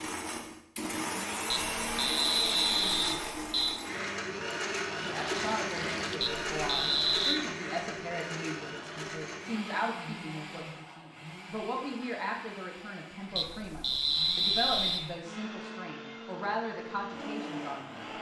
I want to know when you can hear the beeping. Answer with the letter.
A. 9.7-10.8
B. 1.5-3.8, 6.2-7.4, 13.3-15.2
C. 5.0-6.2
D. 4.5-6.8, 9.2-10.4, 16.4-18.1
B.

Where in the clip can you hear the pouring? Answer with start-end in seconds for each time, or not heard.
5.0-6.2.